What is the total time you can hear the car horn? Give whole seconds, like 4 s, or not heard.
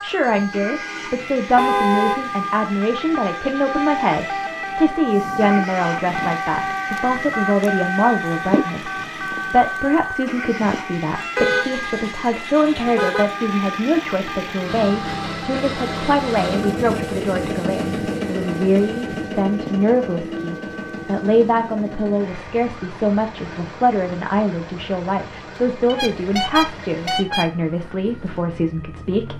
5 s.